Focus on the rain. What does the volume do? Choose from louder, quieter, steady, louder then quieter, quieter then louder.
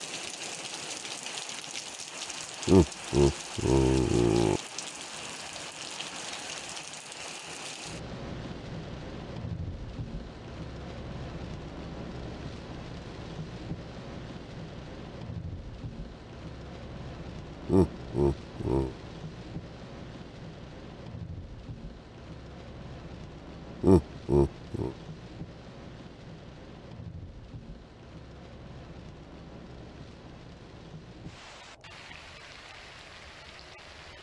quieter.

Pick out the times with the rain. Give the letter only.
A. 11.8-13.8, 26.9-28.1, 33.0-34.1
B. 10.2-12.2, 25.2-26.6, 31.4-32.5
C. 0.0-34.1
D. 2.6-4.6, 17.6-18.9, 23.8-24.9
C.